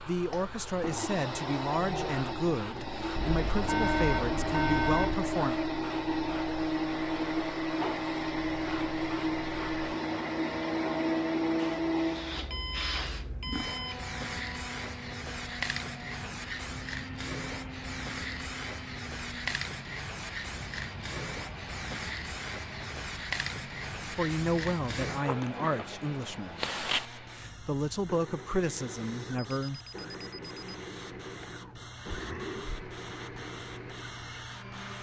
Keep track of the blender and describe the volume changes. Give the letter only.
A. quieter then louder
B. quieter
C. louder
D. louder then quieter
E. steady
B.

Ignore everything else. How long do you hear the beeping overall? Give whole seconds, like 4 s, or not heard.
5 s.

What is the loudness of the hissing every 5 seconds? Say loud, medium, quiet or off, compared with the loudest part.
medium, medium, loud, loud, loud, loud, medium.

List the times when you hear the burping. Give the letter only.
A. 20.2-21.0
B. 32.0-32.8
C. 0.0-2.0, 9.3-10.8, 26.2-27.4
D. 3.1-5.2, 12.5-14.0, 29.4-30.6
B.